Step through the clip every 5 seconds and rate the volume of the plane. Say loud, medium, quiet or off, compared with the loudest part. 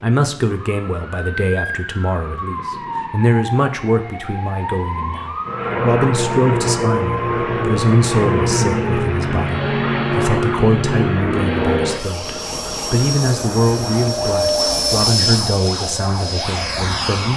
off, loud, loud, loud.